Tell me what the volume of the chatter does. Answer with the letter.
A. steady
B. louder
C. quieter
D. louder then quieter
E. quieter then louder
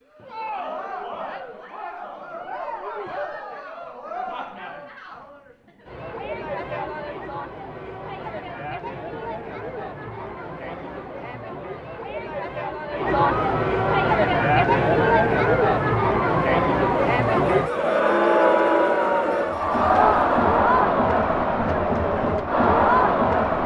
B.